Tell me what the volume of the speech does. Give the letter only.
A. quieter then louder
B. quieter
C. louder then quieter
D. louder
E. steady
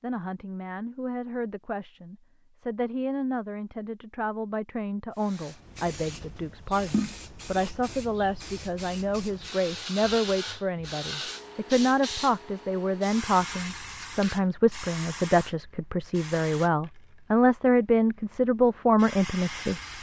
D.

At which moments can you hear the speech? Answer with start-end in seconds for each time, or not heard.
0.0-19.8.